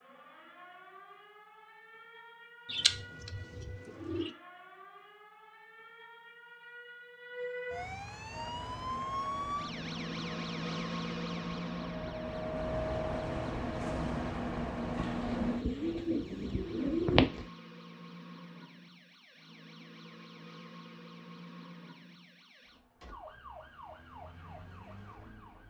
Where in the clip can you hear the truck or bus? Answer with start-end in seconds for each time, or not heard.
8.2-15.7.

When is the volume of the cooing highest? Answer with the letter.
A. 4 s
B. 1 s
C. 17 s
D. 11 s
C.